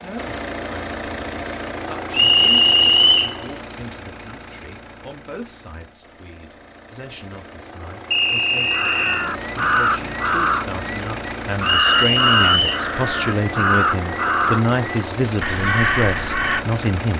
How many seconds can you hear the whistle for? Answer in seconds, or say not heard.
4 s.